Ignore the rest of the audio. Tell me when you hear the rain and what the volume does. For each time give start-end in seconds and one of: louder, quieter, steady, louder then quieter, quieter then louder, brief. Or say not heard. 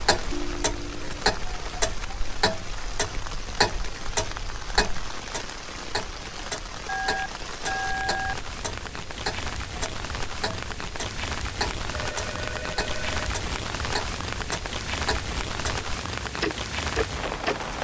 0.0-17.8 louder.